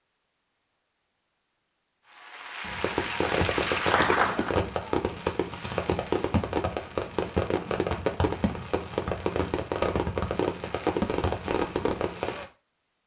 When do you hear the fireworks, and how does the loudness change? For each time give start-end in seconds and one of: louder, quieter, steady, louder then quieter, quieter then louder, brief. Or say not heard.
2.6-12.4 steady.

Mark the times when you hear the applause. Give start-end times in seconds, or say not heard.
2.0-4.5.